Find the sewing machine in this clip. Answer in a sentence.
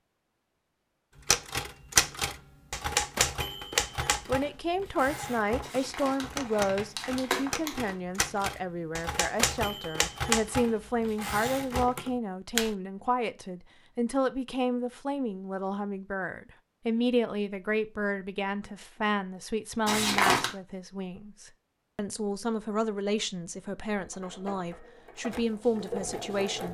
You can hear the sewing machine from 23.9 to 26.7 s.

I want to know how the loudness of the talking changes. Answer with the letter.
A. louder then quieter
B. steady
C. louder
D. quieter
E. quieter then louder
B.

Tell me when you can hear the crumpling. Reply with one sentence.
The crumpling can be heard from 5.6 to 8.0 s and from 19.9 to 20.5 s.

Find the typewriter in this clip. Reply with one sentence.
You can hear the typewriter from 1.2 to 12.8 s.